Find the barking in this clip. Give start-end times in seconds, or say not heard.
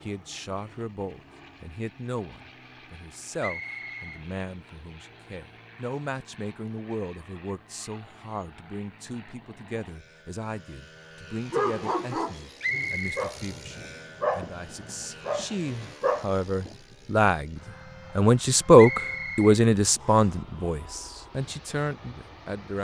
11.5-16.8.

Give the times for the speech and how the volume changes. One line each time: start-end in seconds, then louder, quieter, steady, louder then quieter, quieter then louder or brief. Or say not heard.
0.0-22.7 louder.